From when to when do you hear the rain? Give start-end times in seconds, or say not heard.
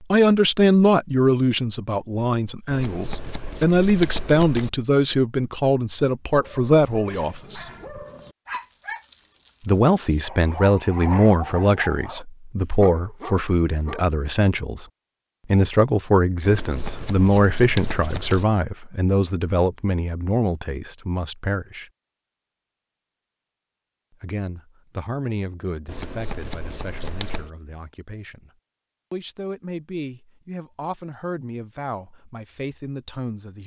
not heard.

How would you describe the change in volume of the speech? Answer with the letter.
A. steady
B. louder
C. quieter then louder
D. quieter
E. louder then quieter
D.